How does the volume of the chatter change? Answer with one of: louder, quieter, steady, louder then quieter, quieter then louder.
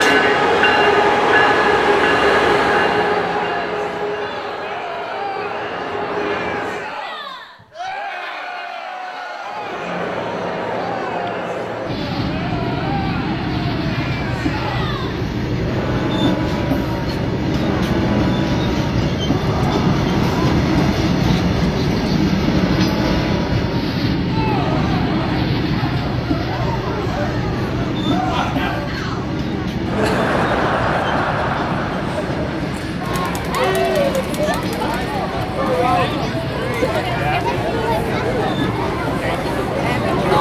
louder.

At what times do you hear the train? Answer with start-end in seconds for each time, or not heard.
0.0-7.0, 9.4-40.3.